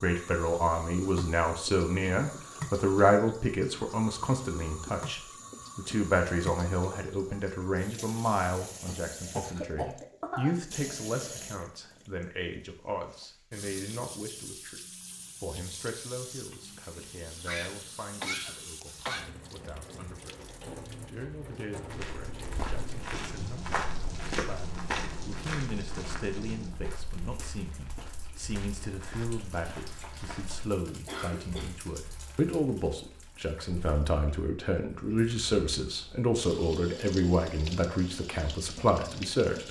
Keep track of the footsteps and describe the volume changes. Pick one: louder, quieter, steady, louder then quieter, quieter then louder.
quieter.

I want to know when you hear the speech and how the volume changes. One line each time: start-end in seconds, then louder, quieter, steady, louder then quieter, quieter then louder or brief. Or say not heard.
0.0-39.6 quieter then louder.